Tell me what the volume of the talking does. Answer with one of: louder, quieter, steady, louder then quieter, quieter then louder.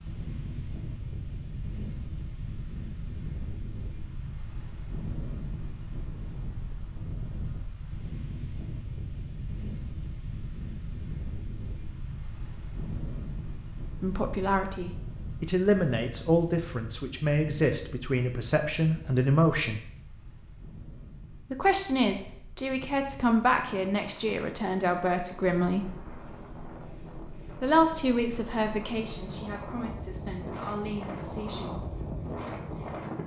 quieter.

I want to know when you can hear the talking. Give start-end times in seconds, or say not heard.
14.0-19.8, 21.5-25.9, 27.6-31.9.